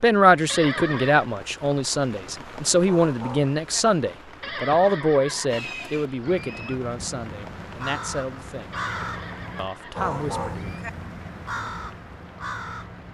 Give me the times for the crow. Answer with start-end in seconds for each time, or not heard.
5.5-13.0.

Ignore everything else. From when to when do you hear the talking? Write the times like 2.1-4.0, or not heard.
0.0-8.8, 9.6-10.8.